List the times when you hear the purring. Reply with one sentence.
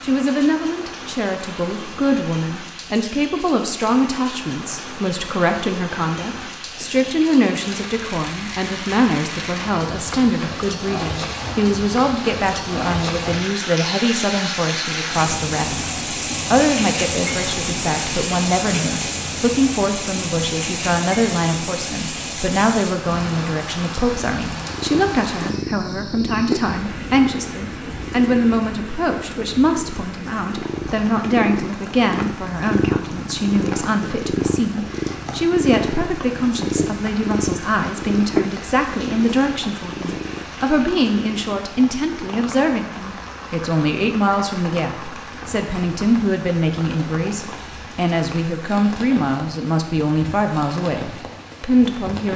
The purring can be heard from 24.6 to 41.6 s.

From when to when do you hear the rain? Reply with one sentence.
The rain can be heard from 0.0 to 52.3 s.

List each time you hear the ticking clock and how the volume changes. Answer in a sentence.
The ticking clock can't be heard in this clip.